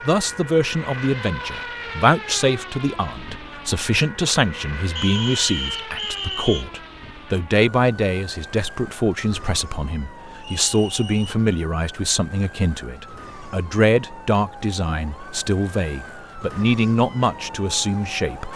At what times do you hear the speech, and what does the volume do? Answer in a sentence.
You can hear the speech from 0.0 to 18.5 s, at a steady volume.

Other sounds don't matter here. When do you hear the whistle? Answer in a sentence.
The whistle can be heard from 5.0 to 6.7 s and from 10.4 to 11.3 s.